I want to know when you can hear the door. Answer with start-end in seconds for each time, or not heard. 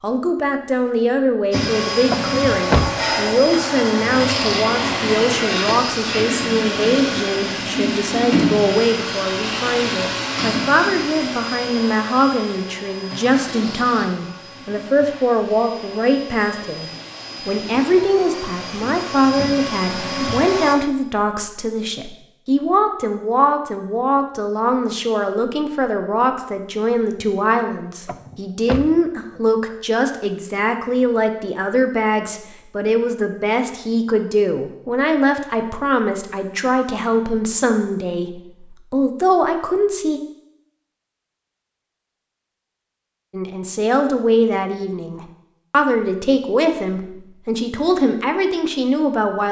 2.1-3.4, 28.1-29.4.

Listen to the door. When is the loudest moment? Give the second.
3 s.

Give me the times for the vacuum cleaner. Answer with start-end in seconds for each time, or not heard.
1.5-20.8.